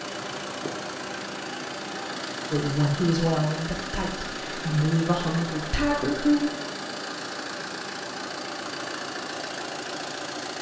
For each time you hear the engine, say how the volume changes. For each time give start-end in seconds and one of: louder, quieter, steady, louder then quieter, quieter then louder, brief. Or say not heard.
0.0-10.5 steady.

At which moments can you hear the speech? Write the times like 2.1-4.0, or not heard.
2.5-6.5.